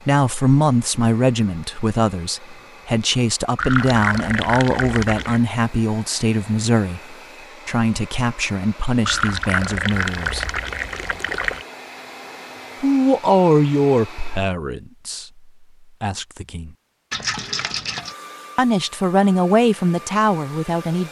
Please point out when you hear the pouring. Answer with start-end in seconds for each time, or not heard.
3.5-5.4, 9.1-11.7, 17.1-18.1.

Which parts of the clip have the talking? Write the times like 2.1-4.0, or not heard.
0.1-10.4, 12.8-16.7, 18.6-21.0.